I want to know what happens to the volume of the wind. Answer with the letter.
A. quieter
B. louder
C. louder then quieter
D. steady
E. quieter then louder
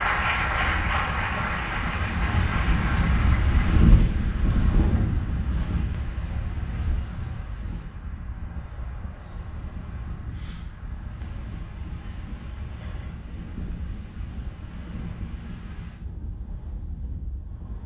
A.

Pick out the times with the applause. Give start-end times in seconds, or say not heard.
0.0-3.9.